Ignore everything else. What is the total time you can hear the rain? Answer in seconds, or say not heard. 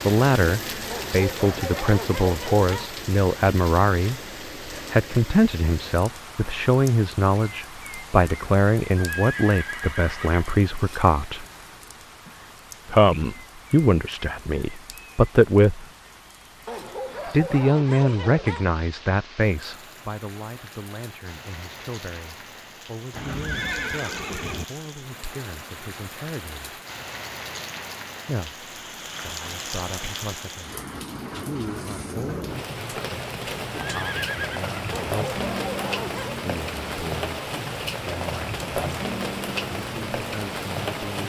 41 s.